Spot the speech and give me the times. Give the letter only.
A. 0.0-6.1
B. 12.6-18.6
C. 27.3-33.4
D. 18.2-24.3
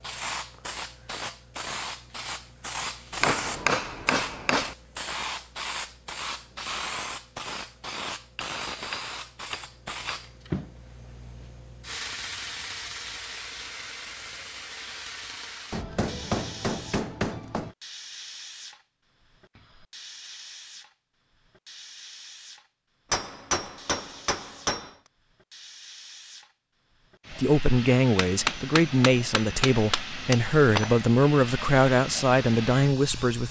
C.